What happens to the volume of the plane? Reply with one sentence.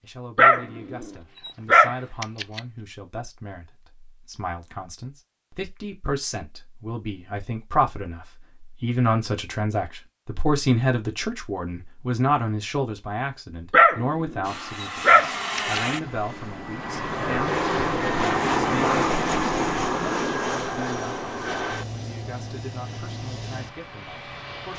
The loudness of the plane goes up, then down.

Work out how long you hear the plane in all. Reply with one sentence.
The plane can be heard for 10 seconds in total.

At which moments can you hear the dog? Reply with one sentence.
You can hear the dog from 0.3 to 2.6 s and from 13.7 to 15.9 s.